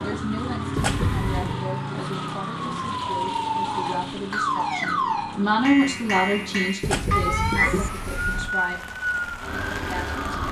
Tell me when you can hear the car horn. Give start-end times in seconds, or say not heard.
0.8-1.4, 6.8-8.6.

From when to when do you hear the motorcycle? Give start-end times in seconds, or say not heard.
0.0-6.8.